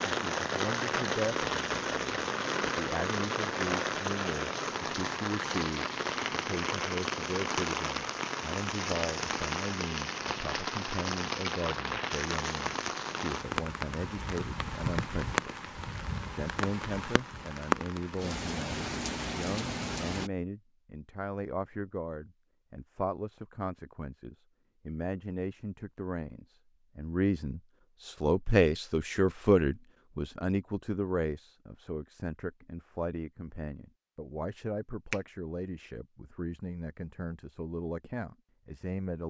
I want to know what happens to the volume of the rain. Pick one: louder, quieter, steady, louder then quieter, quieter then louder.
steady.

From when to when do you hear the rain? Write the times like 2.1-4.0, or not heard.
0.0-20.3.